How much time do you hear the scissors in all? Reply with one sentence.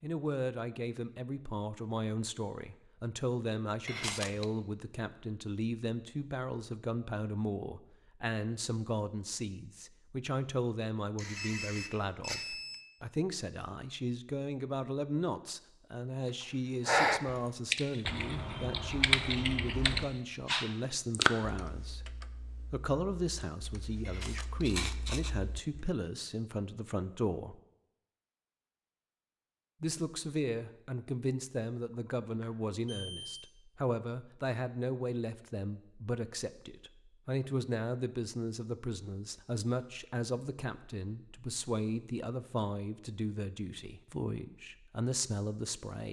You can hear the scissors for 2 seconds altogether.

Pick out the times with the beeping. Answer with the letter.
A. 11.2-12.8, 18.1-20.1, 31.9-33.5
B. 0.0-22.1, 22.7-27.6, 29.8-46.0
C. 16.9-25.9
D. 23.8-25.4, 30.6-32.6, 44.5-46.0
A.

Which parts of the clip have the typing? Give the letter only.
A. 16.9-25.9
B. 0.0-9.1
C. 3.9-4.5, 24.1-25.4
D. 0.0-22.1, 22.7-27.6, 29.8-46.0
A.